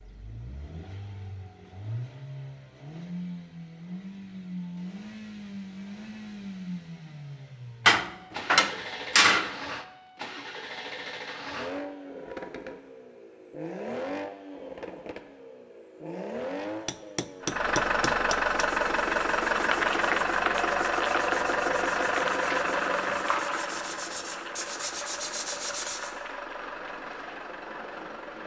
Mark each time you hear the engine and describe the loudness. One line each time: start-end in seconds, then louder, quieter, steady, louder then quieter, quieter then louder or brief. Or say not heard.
0.0-28.4 louder then quieter.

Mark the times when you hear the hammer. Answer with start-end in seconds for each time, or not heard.
7.8-9.6, 16.9-18.6.